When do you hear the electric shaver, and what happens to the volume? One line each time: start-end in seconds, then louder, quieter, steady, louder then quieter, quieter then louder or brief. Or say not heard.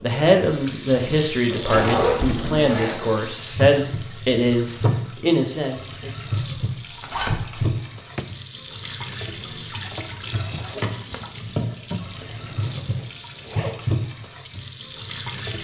not heard.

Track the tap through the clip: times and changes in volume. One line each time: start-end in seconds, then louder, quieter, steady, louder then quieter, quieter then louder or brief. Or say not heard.
0.0-15.5 steady.